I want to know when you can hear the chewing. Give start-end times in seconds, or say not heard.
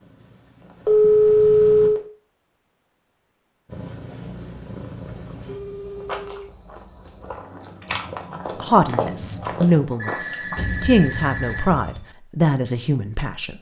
5.0-10.8.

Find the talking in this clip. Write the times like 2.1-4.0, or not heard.
8.6-13.5.